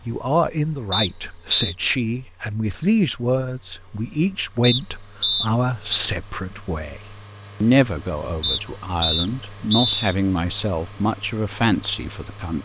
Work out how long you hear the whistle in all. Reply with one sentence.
You can hear the whistle for 4 seconds altogether.